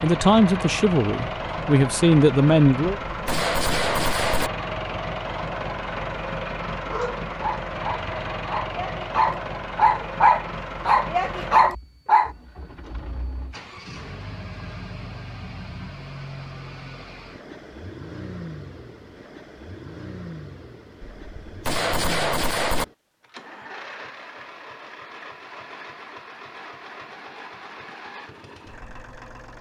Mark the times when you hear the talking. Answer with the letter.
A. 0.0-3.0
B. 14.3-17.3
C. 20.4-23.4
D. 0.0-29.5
A.